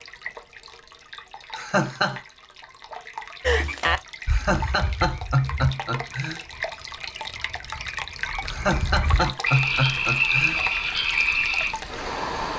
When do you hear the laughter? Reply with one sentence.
The laughter can be heard from 1.5 to 2.2 s, from 4.2 to 6.4 s and from 8.4 to 10.6 s.